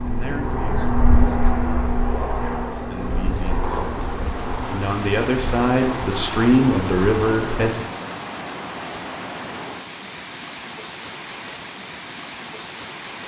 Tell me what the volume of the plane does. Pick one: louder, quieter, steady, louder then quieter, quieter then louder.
quieter.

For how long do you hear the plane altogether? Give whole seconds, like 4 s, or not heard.
8 s.